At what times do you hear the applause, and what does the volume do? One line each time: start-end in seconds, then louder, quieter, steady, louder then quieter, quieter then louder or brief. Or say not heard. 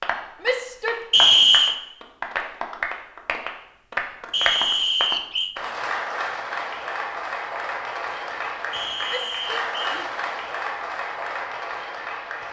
0.0-12.4 steady.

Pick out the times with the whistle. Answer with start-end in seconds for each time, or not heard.
1.1-1.8, 4.3-5.5, 8.7-10.0.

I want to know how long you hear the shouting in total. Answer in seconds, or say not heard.
2 s.